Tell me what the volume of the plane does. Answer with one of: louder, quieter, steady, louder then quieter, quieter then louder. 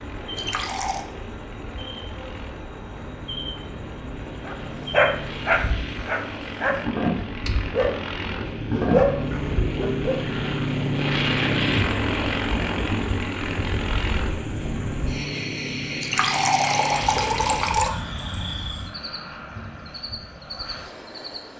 louder then quieter.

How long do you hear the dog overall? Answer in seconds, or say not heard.
6 s.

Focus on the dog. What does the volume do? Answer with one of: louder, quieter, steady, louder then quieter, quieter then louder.
quieter then louder.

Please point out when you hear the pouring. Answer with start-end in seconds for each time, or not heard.
0.3-1.1, 16.0-17.9.